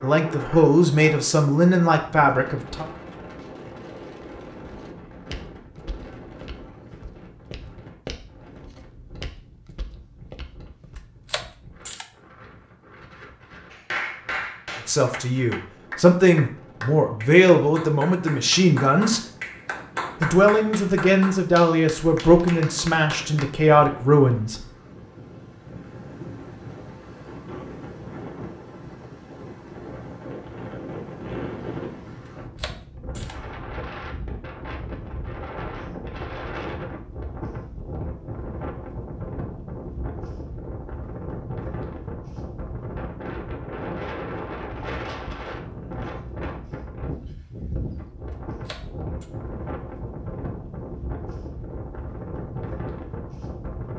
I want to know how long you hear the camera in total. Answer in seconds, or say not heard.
3 s.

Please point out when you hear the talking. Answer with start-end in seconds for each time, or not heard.
0.0-2.9, 14.8-19.2, 20.2-24.6.